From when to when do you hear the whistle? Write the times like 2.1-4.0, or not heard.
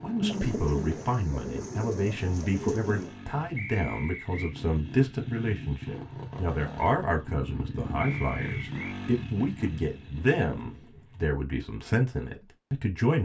3.5-4.5, 8.0-9.0.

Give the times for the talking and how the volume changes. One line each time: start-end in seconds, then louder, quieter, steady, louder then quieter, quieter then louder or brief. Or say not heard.
0.0-13.2 steady.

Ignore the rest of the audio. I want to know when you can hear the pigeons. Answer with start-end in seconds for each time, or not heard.
0.2-3.1, 9.8-11.2.